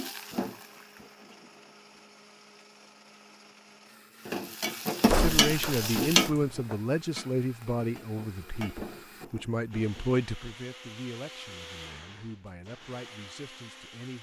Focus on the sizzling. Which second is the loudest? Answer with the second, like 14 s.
6 s.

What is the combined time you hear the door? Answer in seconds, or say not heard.
2 s.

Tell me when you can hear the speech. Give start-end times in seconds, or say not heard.
5.1-14.1.